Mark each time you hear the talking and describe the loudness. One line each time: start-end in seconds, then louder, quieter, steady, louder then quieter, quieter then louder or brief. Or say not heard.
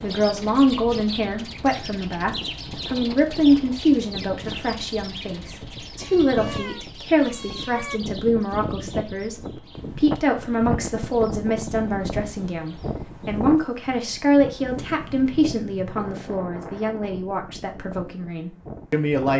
0.0-19.3 quieter.